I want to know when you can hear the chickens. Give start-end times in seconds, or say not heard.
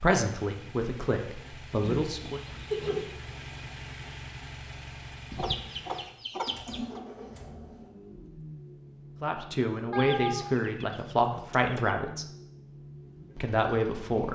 1.8-3.1, 5.3-7.0, 9.9-11.9.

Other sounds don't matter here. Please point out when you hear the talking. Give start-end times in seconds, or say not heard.
0.0-2.4, 9.2-12.2, 13.3-14.3.